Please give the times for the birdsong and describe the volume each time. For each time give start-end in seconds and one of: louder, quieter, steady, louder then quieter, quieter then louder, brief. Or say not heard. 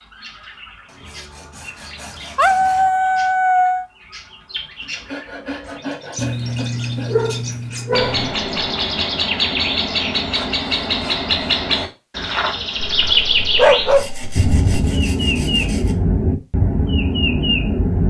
0.0-18.0 louder.